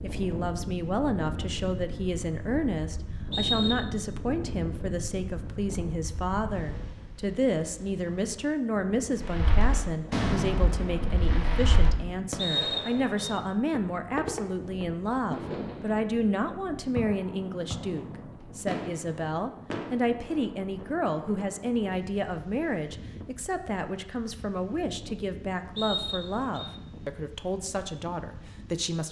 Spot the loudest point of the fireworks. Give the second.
10 s.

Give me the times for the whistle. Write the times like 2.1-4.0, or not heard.
3.3-3.8, 12.3-13.3, 25.8-26.7.